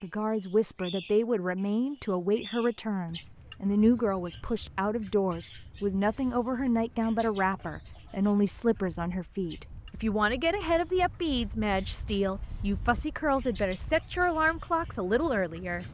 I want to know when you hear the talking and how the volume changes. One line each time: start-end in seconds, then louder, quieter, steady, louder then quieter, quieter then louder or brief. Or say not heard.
0.0-15.8 steady.